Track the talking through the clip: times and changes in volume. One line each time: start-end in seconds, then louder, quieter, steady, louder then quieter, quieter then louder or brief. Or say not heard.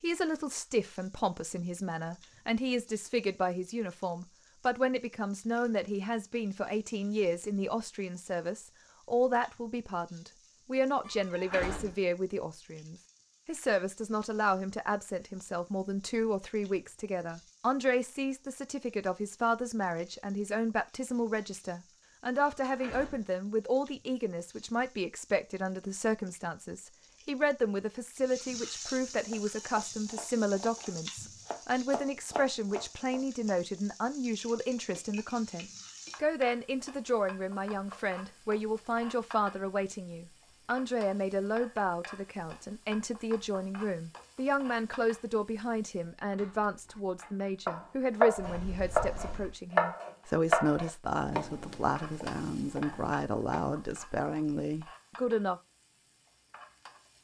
0.0-55.6 steady.